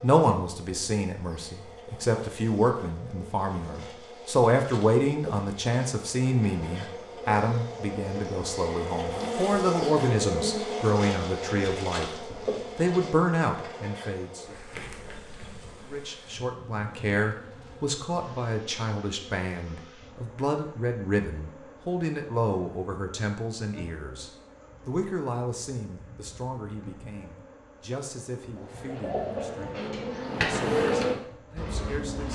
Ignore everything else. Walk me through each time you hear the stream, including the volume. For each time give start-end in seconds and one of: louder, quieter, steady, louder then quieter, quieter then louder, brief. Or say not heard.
not heard.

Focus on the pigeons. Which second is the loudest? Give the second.
31 s.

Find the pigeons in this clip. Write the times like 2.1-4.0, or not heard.
28.6-32.3.